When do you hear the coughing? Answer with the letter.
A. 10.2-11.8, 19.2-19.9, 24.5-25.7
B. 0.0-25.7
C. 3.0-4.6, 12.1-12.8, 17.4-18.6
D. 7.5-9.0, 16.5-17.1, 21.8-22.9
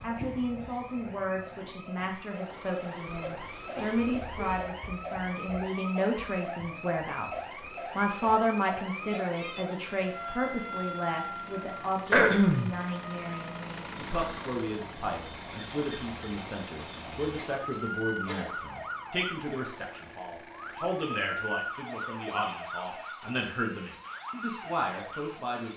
C.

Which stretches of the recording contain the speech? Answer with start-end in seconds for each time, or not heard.
0.0-25.7.